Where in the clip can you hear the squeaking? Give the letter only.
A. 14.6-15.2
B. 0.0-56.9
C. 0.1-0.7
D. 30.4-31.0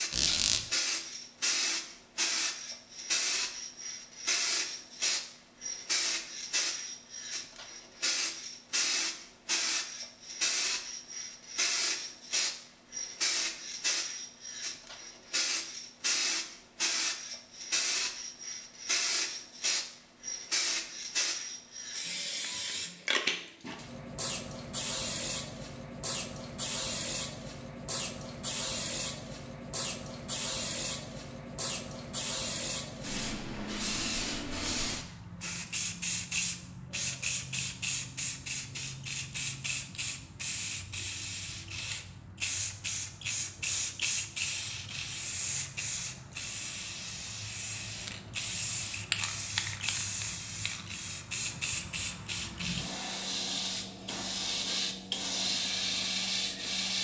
C.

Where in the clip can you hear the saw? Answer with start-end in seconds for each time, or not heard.
not heard.